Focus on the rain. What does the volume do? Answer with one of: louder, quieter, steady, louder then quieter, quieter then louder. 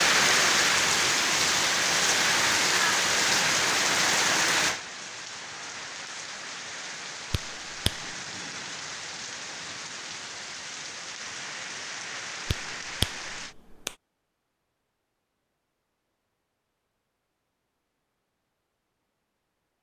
quieter.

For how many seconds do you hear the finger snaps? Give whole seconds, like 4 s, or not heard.
2 s.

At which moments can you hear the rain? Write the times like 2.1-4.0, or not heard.
0.0-13.6.